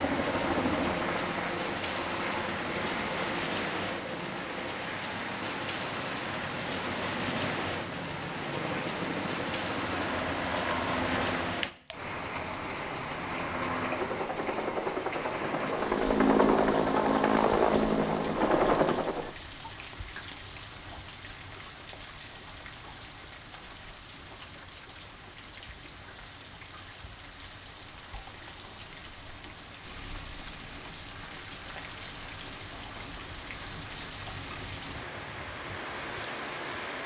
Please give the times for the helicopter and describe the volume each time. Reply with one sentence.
You can hear the helicopter from 0.0 to 11.8 s, getting quieter then louder; and from 13.2 to 19.3 s, getting louder.